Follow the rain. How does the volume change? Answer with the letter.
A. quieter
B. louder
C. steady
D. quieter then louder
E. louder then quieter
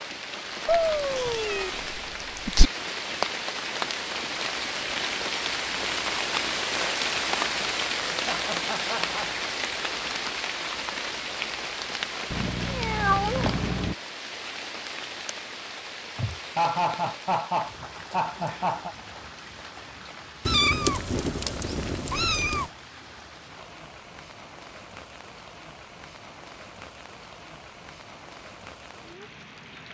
A.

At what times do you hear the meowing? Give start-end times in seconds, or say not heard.
0.7-2.7, 12.3-13.9, 20.4-22.6.